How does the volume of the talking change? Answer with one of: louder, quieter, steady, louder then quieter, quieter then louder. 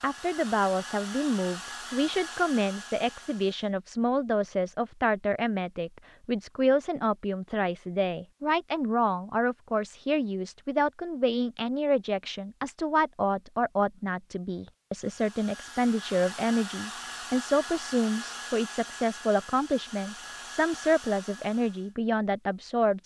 steady.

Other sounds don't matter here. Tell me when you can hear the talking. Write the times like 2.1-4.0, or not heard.
0.0-23.0.